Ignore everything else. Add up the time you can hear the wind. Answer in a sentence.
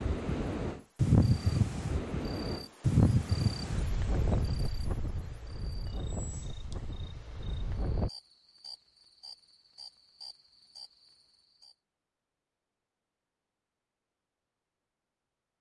The wind can be heard for 8 seconds in total.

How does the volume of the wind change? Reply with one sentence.
The loudness of the wind goes down.